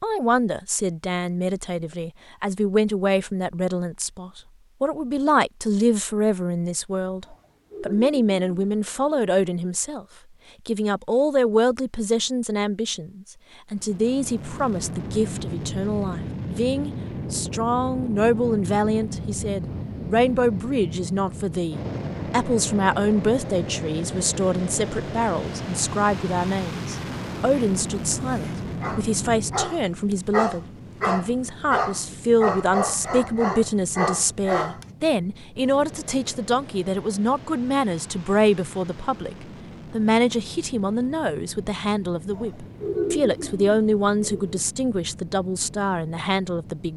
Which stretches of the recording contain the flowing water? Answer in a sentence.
You can't hear the flowing water here.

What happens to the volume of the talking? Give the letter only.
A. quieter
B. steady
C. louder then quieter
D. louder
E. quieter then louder
B.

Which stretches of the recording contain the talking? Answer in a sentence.
You can hear the talking from 0.0 to 10.1 s and from 10.7 to 46.9 s.